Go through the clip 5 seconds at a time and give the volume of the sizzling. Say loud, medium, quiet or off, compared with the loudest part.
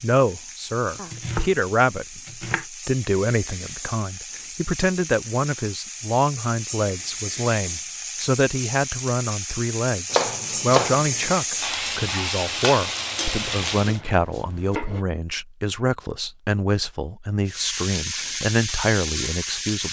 medium, medium, loud, loud.